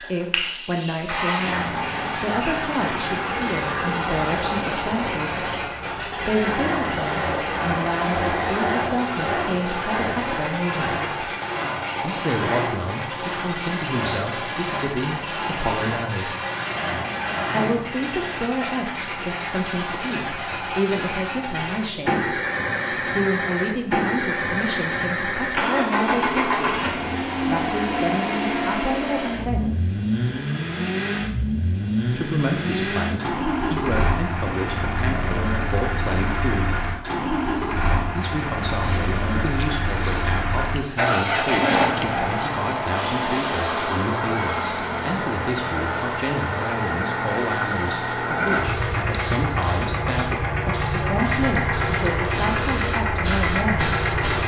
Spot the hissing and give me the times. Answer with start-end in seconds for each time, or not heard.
0.0-1.6, 38.6-54.4.